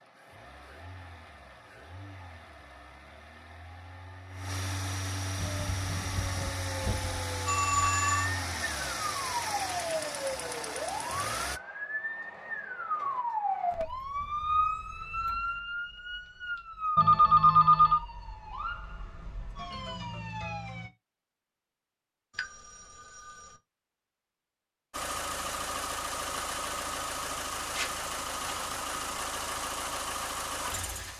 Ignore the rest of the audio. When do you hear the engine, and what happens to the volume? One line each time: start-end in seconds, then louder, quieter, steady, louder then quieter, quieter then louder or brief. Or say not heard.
0.0-11.6 louder
24.9-31.1 steady.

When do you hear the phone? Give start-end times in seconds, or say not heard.
7.5-8.3, 16.9-18.0, 22.4-23.6.